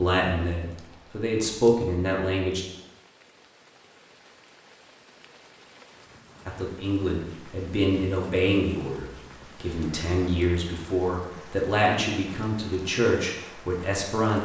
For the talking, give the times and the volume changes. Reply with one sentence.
The talking can be heard briefly from 0.0 to 2.6 s; and from 6.5 to 14.3 s, at a steady volume.